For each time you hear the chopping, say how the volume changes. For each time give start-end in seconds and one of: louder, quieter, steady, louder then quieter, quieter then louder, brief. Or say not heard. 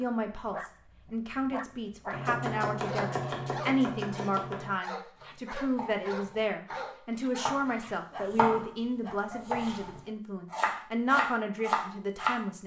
2.1-8.7 quieter then louder
9.4-12.3 brief.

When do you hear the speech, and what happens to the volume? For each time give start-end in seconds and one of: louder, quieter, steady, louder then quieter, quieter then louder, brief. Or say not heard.
0.0-12.6 steady.